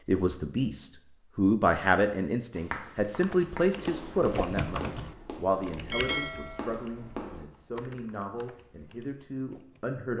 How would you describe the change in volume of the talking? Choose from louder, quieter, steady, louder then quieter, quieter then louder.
quieter.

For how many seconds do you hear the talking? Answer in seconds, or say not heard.
10 s.